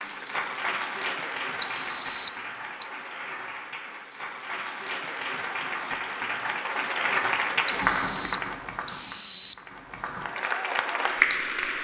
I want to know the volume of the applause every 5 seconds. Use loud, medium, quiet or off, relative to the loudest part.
medium, loud, loud.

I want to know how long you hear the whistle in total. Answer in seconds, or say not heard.
3 s.